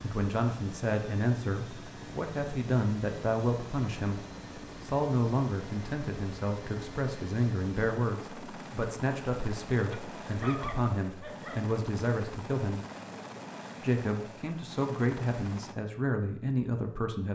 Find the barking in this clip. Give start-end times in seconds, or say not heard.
9.8-11.7.